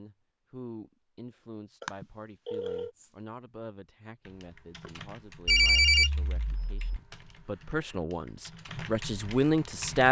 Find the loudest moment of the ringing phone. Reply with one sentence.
The loudest moment of the ringing phone is at 6 seconds.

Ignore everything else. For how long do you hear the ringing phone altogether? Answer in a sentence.
The ringing phone can be heard for 3 seconds in total.